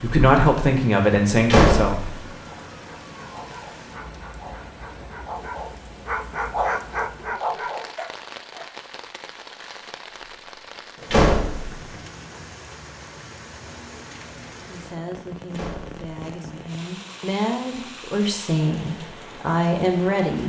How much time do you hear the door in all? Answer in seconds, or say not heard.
2 s.